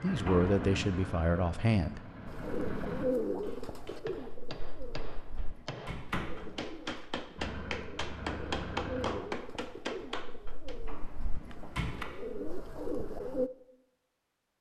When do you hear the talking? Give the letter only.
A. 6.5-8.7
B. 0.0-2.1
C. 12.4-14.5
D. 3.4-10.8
B.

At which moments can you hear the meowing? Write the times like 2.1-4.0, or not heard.
not heard.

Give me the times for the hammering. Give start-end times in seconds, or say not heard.
3.4-10.8.